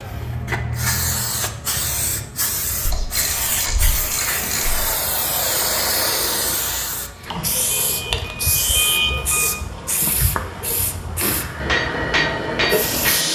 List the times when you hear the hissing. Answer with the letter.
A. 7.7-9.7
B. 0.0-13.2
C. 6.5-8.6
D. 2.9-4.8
B.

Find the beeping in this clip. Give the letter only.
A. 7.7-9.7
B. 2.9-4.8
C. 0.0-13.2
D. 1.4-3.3
A.